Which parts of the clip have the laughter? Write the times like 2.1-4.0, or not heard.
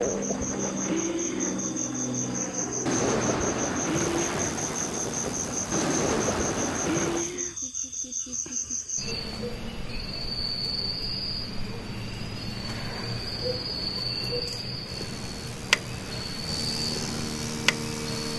not heard.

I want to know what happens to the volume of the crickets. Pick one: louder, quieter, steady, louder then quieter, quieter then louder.
steady.